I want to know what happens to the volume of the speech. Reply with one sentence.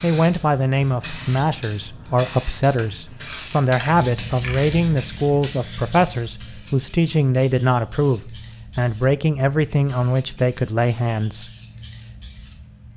The volume of the speech stays about the same.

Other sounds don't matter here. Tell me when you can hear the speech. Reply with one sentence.
The speech can be heard from 0.0 to 11.5 s.